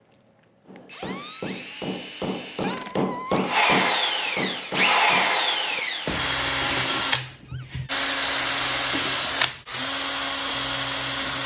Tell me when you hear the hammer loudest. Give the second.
3 s.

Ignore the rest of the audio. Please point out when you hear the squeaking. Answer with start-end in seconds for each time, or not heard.
2.6-3.5, 7.5-8.0.